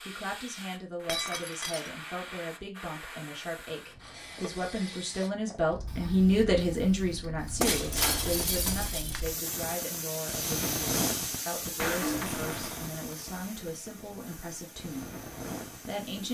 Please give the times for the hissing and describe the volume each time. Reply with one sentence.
You can hear the hissing from 0.0 to 16.2 s, getting louder then quieter.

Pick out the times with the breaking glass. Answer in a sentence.
You can hear the breaking glass from 1.1 to 1.9 s, from 7.6 to 9.2 s and from 11.8 to 12.9 s.